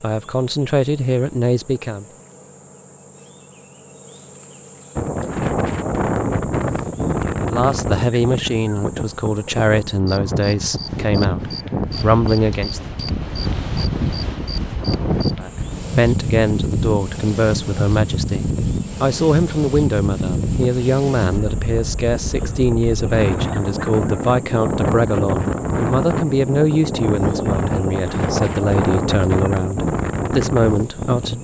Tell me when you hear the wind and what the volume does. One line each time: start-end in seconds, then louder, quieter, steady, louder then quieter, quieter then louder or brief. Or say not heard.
5.0-31.3 steady.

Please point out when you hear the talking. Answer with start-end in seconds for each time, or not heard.
0.0-2.0, 7.4-12.9, 15.3-31.3.